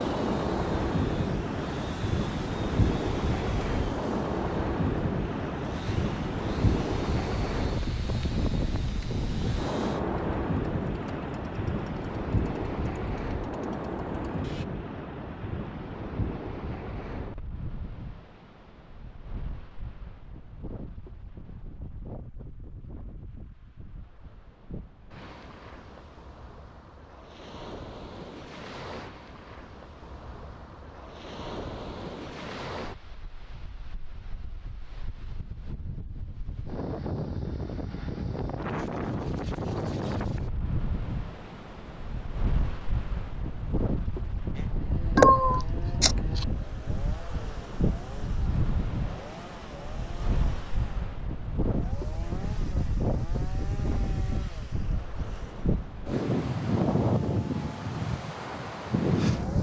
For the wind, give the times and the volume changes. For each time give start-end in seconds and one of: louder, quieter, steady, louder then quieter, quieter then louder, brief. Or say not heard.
0.0-59.5 quieter then louder.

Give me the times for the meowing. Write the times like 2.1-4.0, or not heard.
45.1-46.5.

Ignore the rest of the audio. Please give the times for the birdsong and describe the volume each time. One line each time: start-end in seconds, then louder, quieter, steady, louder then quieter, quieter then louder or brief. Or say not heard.
not heard.